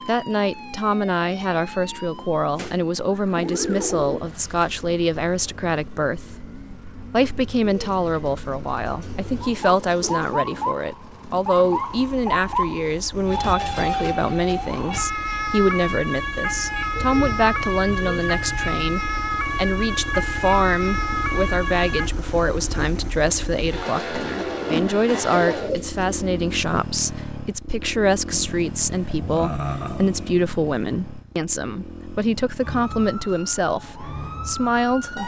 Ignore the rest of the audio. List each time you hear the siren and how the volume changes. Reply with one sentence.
The siren can be heard from 0.0 to 22.1 s, getting quieter then louder; and briefly from 32.6 to 35.2 s.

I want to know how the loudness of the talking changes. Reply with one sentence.
The loudness of the talking stays about the same.